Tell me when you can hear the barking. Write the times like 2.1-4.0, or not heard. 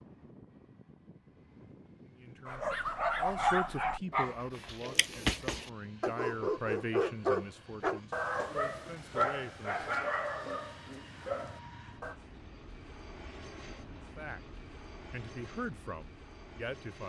2.5-12.2.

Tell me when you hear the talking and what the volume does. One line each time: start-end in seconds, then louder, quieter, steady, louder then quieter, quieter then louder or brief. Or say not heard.
2.0-9.9 quieter
14.2-17.0 brief.